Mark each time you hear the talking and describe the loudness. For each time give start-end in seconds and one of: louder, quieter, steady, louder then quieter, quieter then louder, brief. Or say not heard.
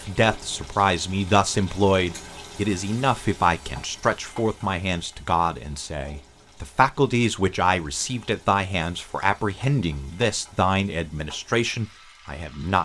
0.0-12.8 steady.